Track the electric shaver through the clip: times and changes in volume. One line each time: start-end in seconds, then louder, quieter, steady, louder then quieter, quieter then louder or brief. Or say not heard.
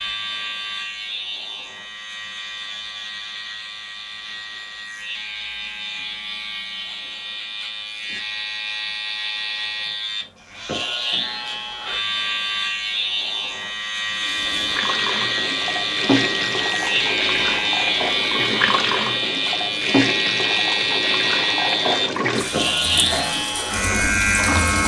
0.0-24.8 louder.